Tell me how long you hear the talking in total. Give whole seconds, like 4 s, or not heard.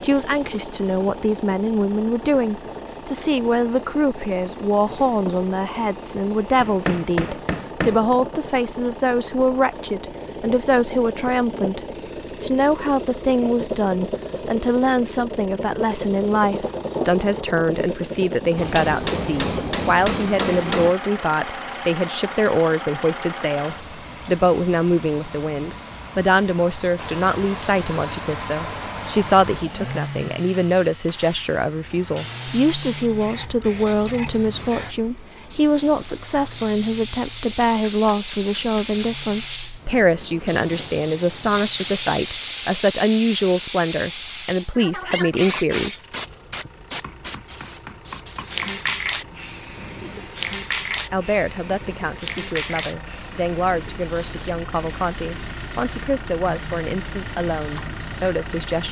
54 s.